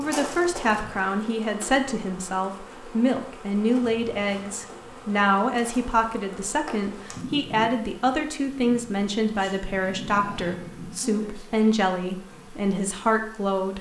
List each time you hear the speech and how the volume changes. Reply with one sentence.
The speech can be heard from 0.0 to 13.7 s, at a steady volume.